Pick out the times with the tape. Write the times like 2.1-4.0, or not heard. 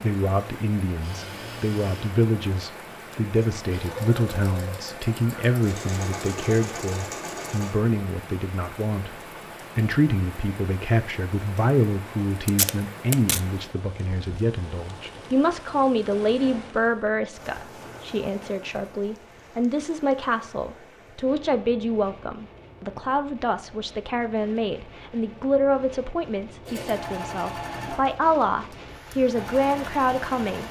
12.4-13.4.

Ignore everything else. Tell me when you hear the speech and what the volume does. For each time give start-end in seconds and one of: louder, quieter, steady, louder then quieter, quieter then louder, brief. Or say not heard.
0.0-30.6 steady.